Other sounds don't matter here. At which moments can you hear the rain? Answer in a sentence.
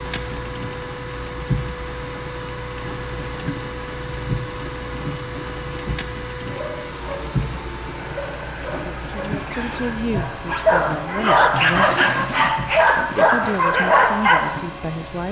You can hear the rain from 0.0 to 15.2 s.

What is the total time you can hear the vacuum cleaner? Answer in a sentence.
You can hear the vacuum cleaner for 15 seconds altogether.